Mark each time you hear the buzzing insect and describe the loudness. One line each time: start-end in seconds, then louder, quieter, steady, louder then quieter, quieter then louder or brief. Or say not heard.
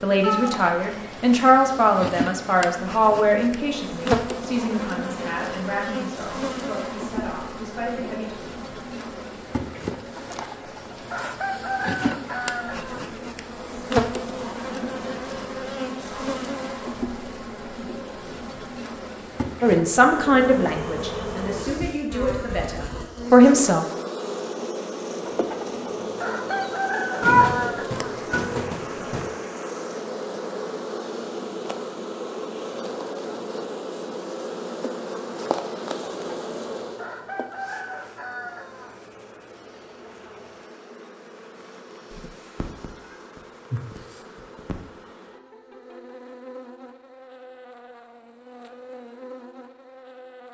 0.0-50.4 quieter.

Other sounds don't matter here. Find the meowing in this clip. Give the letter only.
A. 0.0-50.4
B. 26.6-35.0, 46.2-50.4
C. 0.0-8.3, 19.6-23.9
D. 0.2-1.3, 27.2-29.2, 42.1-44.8
D.